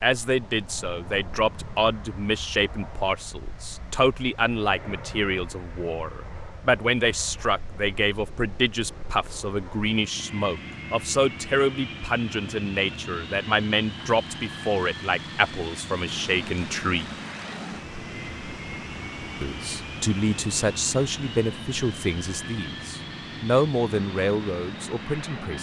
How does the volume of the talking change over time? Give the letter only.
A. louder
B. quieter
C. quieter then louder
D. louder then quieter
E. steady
E.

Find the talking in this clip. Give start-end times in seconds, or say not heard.
0.0-17.1, 19.4-25.5.